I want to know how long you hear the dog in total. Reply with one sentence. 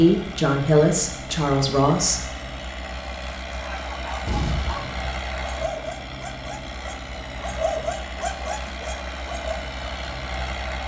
You can hear the dog for 6 seconds altogether.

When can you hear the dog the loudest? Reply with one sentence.
The volume of the dog peaks at 8 seconds.